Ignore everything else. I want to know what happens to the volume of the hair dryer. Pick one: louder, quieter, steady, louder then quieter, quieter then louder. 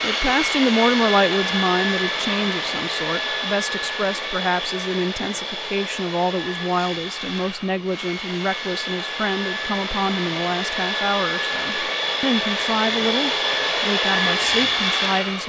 quieter then louder.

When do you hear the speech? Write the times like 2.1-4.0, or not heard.
0.0-15.4.